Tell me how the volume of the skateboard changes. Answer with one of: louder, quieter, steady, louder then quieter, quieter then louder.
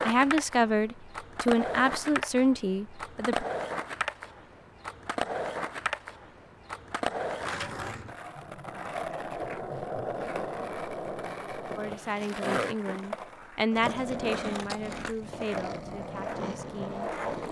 steady.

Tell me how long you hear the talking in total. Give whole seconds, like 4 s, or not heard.
9 s.